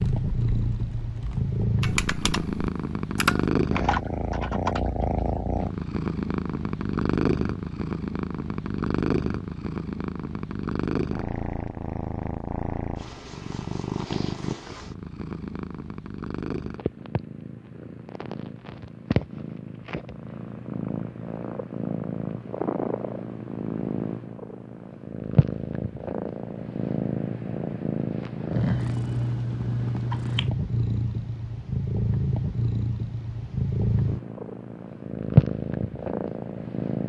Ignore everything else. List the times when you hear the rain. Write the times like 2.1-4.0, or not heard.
not heard.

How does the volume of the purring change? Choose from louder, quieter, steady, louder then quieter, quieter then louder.
quieter then louder.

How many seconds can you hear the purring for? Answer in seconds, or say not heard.
37 s.